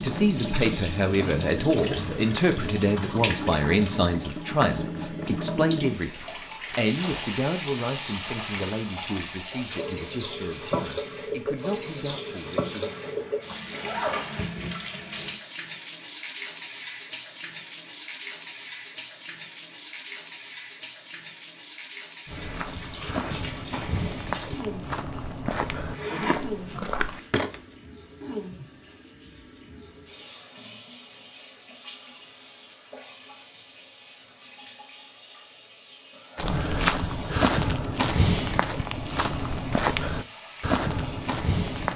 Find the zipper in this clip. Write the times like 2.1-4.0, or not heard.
12.8-14.6, 25.9-27.3.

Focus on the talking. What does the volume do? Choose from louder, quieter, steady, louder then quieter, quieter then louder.
quieter.